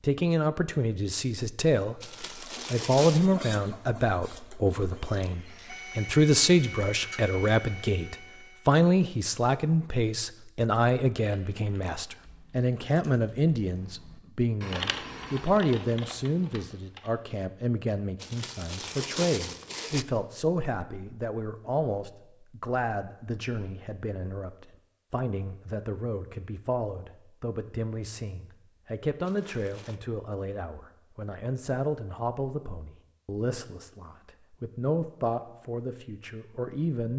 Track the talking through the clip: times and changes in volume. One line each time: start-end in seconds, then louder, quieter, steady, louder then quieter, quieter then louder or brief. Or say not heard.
0.0-37.1 quieter.